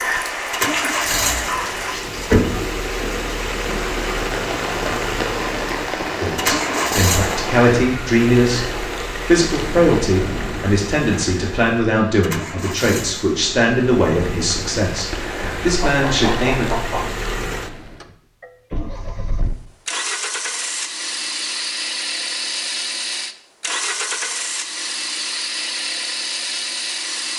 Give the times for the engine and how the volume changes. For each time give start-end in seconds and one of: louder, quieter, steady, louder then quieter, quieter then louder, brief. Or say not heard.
0.1-27.3 quieter then louder.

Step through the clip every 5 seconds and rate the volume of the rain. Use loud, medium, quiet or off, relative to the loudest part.
loud, loud, medium, medium, off, off.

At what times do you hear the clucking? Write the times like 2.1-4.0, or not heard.
15.7-17.1.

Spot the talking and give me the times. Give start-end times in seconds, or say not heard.
6.2-8.7, 9.2-16.7.